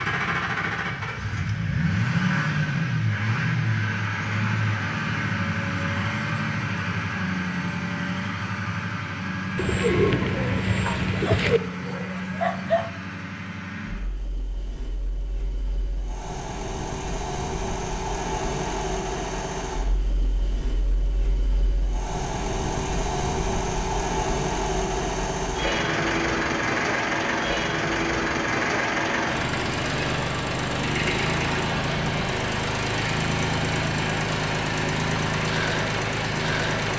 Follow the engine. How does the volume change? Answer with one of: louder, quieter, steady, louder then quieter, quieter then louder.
quieter then louder.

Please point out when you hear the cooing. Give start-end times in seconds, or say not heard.
9.6-11.6.